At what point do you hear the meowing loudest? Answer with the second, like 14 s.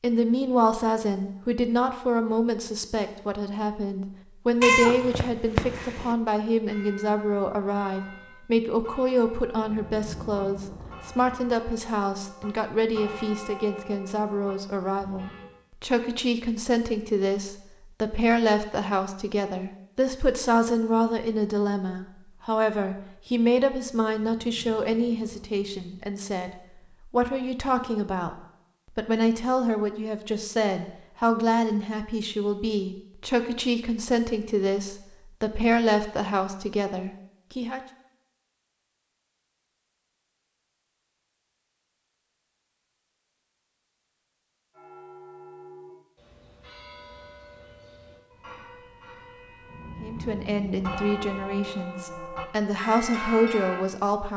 5 s.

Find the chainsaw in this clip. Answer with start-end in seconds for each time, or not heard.
not heard.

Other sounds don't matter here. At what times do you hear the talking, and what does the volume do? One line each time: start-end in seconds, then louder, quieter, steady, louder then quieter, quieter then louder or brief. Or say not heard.
0.0-26.5 steady
27.1-37.8 steady
50.0-54.3 quieter then louder.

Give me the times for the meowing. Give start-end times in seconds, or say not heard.
4.6-6.2.